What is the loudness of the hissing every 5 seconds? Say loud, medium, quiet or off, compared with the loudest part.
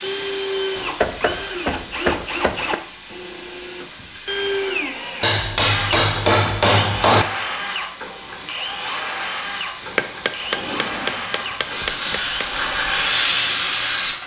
medium, medium, loud.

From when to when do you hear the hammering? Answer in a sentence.
The hammering can be heard from 0.8 to 2.8 s, from 5.2 to 7.2 s and from 9.8 to 12.4 s.